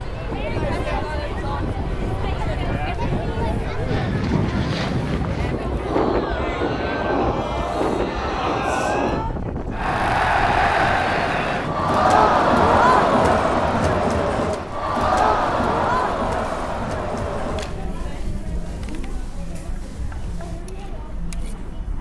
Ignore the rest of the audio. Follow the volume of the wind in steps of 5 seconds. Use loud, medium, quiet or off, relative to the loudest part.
loud, loud, medium, quiet, quiet.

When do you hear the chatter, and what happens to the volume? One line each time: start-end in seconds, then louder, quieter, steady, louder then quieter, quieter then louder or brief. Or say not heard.
0.0-21.9 louder then quieter.